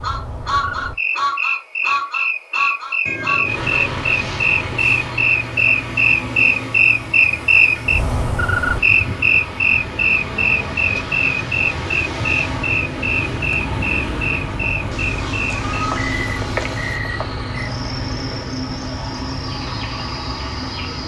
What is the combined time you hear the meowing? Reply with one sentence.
You can hear the meowing for 4 seconds altogether.